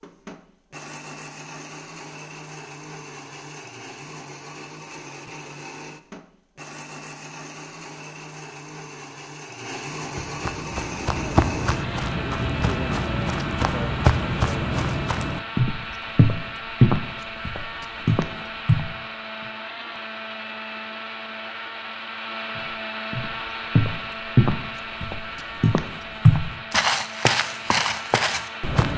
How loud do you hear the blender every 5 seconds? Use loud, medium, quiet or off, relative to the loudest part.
medium, medium, loud, loud, loud, loud.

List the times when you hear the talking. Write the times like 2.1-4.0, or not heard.
not heard.